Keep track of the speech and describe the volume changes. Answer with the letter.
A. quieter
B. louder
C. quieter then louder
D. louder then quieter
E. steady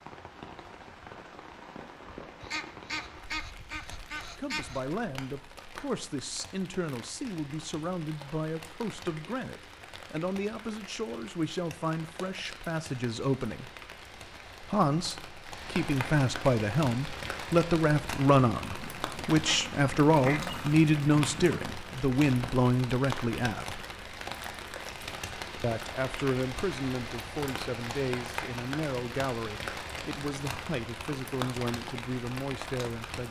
D.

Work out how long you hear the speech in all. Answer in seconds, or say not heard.
26 s.